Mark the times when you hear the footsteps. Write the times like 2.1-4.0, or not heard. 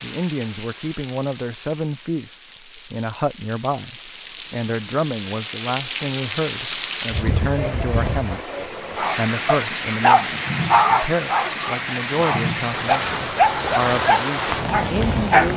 not heard.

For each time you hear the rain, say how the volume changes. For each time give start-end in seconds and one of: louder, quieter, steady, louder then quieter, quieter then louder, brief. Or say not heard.
0.0-15.5 louder.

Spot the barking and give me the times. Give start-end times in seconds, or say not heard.
8.9-15.5.